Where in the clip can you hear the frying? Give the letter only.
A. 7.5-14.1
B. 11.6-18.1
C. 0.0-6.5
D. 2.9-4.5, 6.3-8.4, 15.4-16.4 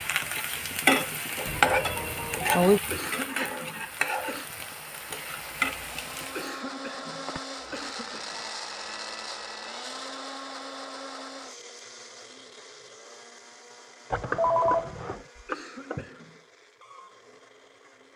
C.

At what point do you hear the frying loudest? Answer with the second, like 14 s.
1 s.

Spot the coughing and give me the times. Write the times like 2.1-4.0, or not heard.
2.9-4.5, 6.3-8.4, 15.4-16.4.